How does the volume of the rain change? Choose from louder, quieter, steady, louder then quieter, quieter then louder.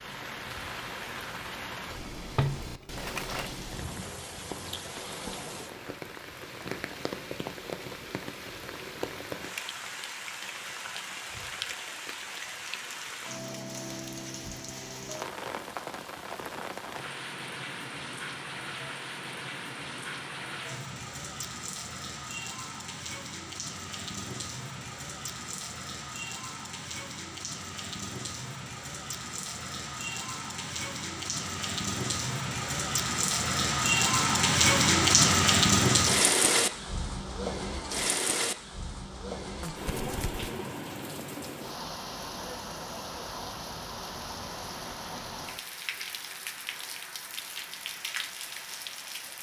louder then quieter.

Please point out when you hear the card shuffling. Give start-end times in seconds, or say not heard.
2.4-3.5, 39.6-40.5.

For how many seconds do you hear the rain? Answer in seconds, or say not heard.
49 s.